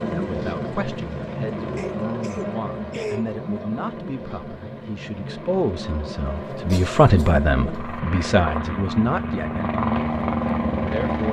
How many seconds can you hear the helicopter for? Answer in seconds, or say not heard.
11 s.